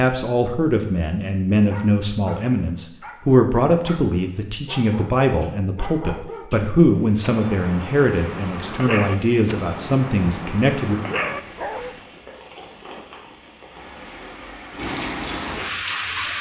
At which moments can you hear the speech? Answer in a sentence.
You can hear the speech from 0.0 to 11.0 s.